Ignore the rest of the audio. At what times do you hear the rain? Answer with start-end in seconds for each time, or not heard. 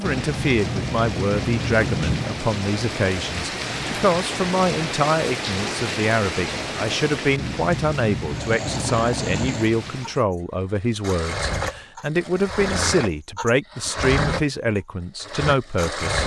0.0-10.2.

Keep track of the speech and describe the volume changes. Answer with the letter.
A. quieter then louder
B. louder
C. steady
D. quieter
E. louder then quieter
C.